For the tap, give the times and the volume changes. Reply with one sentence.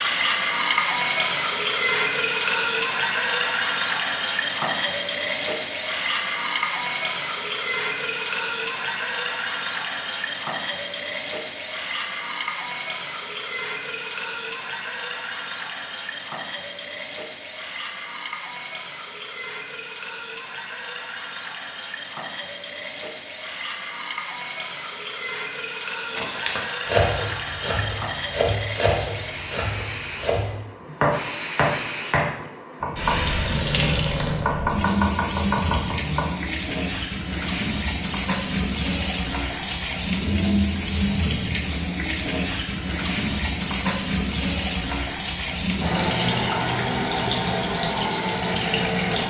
The tap can be heard from 0.0 to 49.2 s, getting quieter then louder.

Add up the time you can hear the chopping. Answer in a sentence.
You can hear the chopping for 10 seconds altogether.